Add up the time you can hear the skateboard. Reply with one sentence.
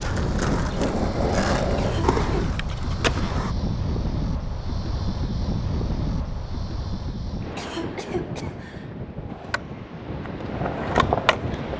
You can hear the skateboard for 6 seconds altogether.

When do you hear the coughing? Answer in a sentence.
You can hear the coughing from 1.6 to 2.5 s and from 7.4 to 8.9 s.